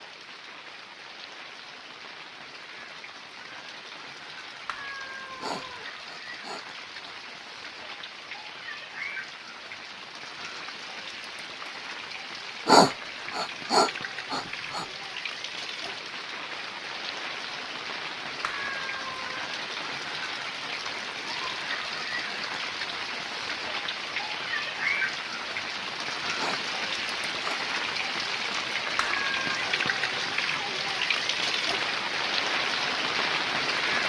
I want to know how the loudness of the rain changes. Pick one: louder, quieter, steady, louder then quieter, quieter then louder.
louder.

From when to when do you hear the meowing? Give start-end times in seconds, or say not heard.
4.7-5.8, 18.4-19.4, 28.9-29.6.